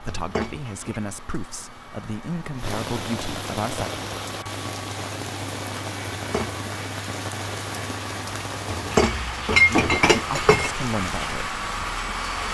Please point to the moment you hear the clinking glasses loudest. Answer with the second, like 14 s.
10 s.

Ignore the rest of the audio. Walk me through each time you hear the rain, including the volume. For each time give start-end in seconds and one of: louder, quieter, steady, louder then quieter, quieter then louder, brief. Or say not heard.
0.0-12.4 louder.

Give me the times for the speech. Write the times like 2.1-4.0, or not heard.
0.0-3.9, 9.7-11.6.